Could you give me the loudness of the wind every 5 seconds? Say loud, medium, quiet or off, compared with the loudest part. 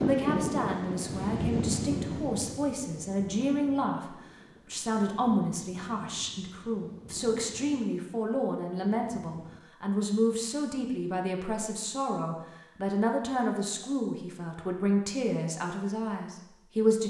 loud, quiet, off, off.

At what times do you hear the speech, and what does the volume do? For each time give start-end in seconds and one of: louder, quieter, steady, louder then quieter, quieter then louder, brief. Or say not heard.
0.0-17.0 steady.